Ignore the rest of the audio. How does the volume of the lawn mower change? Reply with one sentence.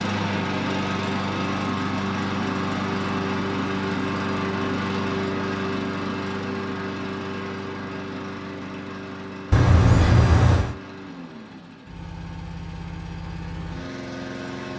The loudness of the lawn mower goes down.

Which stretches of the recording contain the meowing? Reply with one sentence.
The meowing can be heard from 9.5 to 10.8 s.